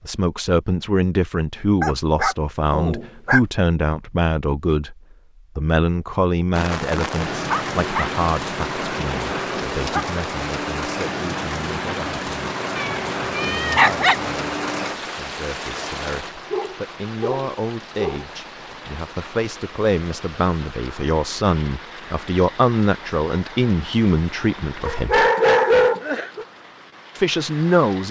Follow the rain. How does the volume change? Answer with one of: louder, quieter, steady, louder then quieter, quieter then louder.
quieter.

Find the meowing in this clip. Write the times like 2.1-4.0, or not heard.
12.8-14.3.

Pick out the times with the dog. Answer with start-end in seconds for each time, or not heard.
1.8-3.4, 7.5-10.1, 16.5-18.2, 24.9-26.4.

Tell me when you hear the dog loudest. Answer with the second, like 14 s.
26 s.